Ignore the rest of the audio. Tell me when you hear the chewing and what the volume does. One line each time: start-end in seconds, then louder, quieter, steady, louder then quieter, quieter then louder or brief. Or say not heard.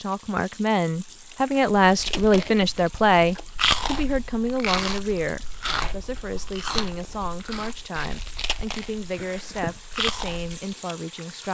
1.8-10.6 quieter then louder.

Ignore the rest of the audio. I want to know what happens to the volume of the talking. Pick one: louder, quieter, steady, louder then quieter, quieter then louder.
quieter.